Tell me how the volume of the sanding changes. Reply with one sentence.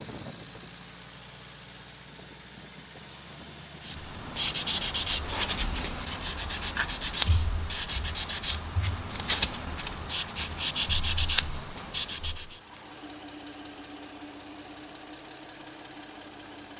The volume of the sanding stays about the same.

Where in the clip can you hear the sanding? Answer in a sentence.
You can hear the sanding from 3.8 to 12.6 s.